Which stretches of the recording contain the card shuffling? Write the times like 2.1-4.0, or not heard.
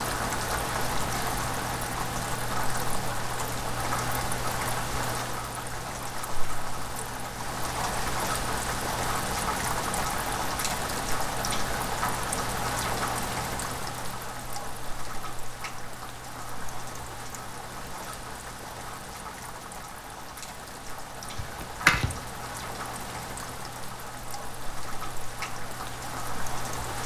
21.4-22.1.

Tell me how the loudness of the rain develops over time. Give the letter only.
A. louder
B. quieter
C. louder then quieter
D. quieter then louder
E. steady
B.